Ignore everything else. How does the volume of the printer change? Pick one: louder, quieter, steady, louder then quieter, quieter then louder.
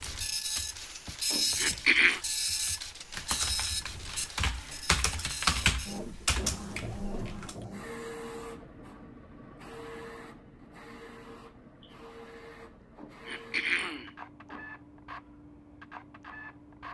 quieter.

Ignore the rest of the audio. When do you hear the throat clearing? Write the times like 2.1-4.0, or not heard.
1.3-2.2, 12.9-14.6.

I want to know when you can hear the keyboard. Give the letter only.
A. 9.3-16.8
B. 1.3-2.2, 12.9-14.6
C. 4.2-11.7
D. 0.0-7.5
D.